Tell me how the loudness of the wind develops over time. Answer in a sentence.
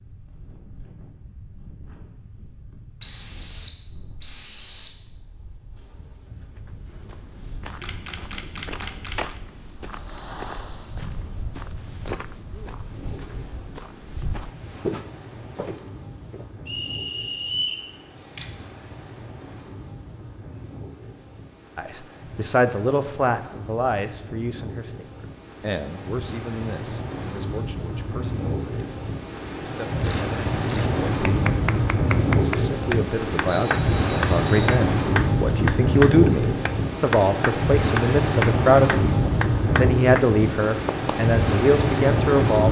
The volume of the wind goes up.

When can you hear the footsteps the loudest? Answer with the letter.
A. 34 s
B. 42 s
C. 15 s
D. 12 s
C.